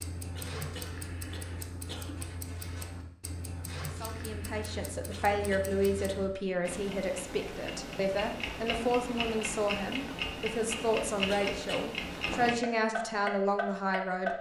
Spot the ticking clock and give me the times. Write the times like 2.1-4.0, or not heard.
0.0-14.3.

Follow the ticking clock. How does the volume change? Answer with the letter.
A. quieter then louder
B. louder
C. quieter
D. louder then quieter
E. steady
B.